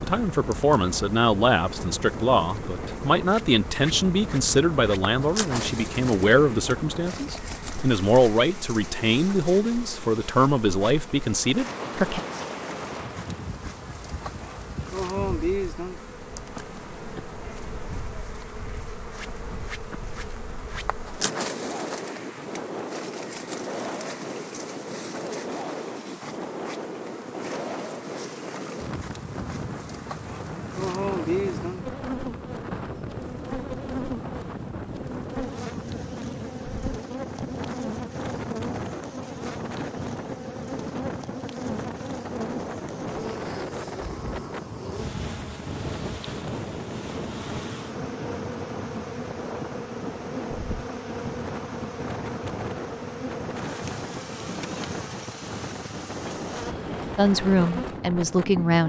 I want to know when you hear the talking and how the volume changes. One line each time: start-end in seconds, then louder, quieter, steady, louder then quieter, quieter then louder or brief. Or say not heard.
0.0-12.2 steady
57.1-58.8 brief.